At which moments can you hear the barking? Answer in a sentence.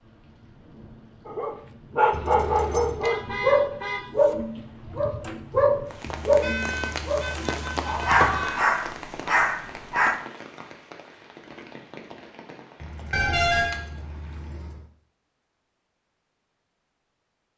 The barking can be heard from 1.2 to 10.2 s.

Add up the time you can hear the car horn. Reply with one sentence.
You can hear the car horn for 4 seconds altogether.